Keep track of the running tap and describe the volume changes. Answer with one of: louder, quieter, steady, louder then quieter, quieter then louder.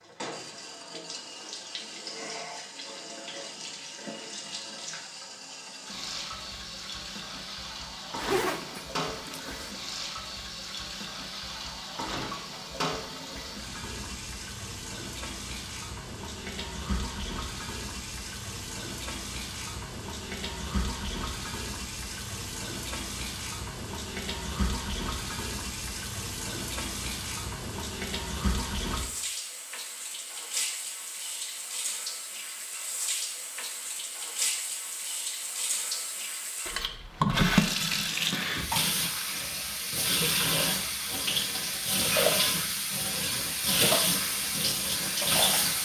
louder.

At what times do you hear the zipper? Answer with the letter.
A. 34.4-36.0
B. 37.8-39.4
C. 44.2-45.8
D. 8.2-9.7
D.